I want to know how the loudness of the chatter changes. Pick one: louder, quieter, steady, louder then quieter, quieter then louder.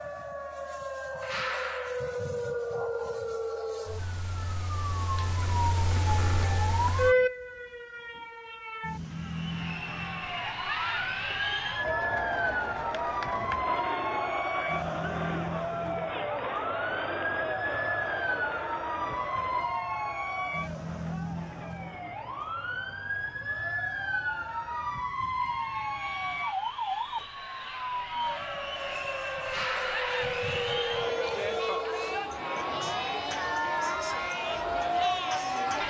quieter then louder.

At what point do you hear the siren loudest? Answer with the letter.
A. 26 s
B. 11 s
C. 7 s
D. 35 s
C.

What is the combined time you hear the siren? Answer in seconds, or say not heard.
36 s.